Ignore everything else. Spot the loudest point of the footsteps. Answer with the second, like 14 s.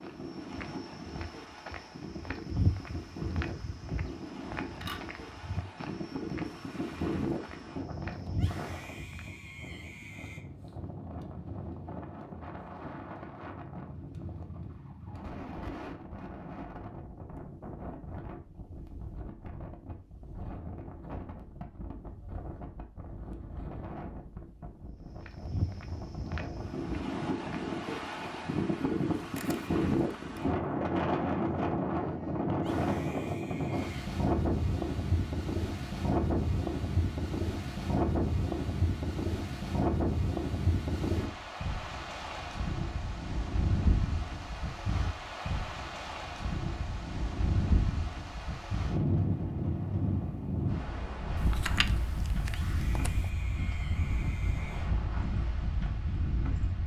3 s.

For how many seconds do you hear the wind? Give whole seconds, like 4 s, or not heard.
57 s.